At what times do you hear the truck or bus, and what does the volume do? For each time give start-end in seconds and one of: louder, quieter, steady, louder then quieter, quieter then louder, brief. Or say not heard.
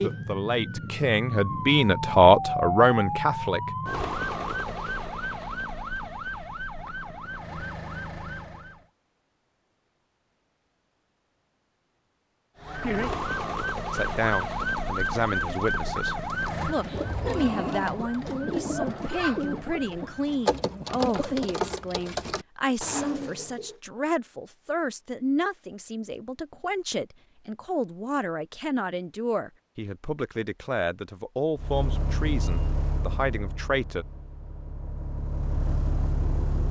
31.6-36.6 quieter then louder.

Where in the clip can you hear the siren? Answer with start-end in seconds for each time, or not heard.
0.0-8.8, 12.6-20.3.